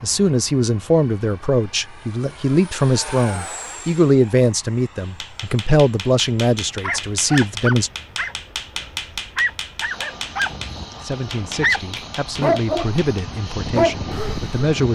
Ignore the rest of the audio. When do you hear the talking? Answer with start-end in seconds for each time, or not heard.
0.0-7.9, 10.9-14.9.